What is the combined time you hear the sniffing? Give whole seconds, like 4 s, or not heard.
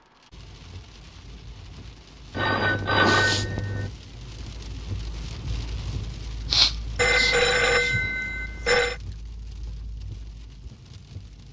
2 s.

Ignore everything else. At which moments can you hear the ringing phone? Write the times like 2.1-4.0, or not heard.
2.3-3.9, 7.0-8.9.